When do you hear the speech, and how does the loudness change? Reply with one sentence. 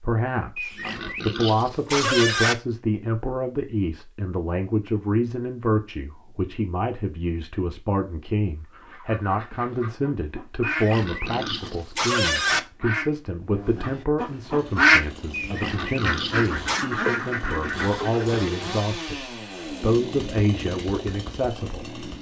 The speech can be heard from 0.0 to 22.0 s, at a steady volume.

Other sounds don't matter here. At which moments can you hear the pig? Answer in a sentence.
You can hear the pig from 0.6 to 2.5 s, from 10.6 to 12.6 s and from 15.3 to 16.9 s.